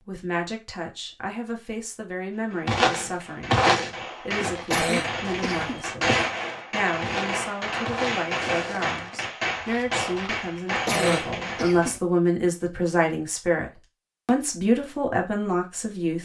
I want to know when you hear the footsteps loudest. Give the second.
4 s.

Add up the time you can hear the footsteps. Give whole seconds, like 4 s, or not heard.
8 s.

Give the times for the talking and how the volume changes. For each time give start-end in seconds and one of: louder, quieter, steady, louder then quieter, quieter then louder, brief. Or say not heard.
0.1-16.2 louder.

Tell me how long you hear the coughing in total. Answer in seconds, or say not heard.
2 s.